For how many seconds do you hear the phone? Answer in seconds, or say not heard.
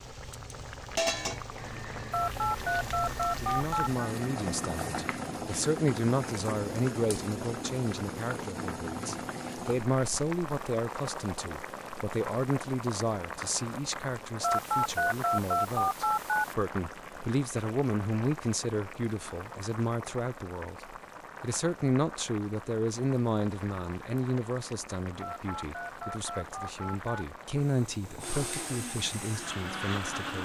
6 s.